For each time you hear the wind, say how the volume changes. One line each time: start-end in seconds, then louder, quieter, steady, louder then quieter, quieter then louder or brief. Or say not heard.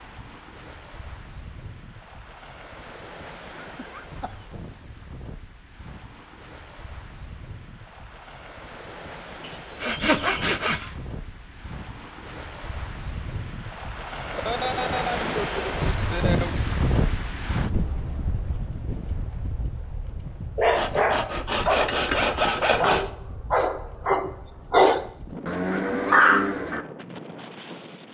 0.0-28.0 louder then quieter.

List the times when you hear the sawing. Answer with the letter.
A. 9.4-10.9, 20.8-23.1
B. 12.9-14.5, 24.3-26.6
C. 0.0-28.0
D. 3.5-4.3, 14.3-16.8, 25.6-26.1
A.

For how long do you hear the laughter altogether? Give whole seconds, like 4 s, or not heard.
4 s.